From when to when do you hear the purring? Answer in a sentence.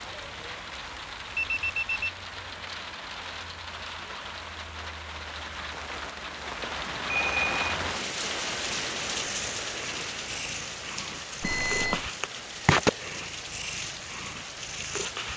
The purring can be heard from 8.7 to 15.3 s.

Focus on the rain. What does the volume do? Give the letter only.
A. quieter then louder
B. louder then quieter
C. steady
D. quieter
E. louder
B.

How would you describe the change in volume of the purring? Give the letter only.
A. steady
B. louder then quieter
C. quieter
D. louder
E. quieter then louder
B.